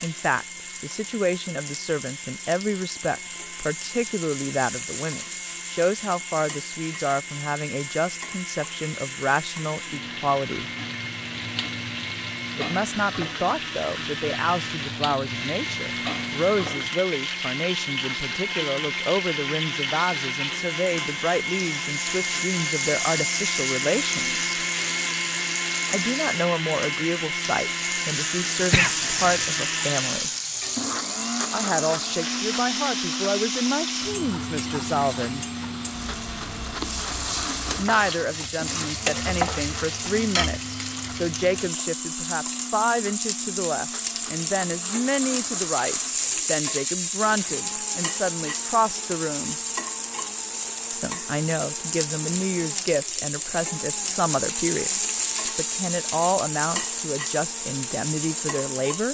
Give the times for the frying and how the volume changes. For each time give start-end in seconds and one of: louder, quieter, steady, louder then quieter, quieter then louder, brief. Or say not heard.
0.0-59.0 louder.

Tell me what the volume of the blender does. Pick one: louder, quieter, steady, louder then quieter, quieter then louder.
louder then quieter.